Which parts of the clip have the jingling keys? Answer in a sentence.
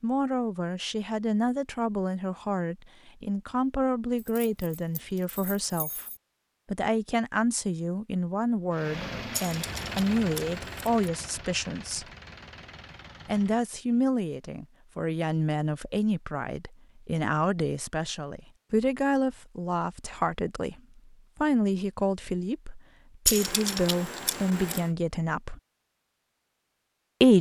The jingling keys can be heard from 4.2 to 6.2 s, from 9.3 to 11.1 s and from 23.2 to 24.9 s.